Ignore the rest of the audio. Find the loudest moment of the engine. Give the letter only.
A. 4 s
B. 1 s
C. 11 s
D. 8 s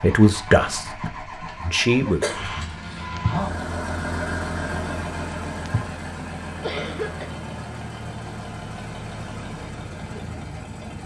A.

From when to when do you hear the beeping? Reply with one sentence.
The beeping can't be heard in this clip.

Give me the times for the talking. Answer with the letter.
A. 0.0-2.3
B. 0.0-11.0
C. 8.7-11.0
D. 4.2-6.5
A.